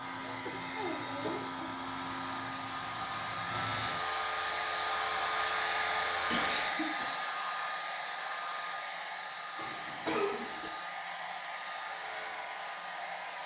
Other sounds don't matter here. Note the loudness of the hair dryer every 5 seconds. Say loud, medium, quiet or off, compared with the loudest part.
loud, loud, medium.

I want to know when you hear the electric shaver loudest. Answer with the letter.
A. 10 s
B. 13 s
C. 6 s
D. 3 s
C.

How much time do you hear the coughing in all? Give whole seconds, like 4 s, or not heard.
3 s.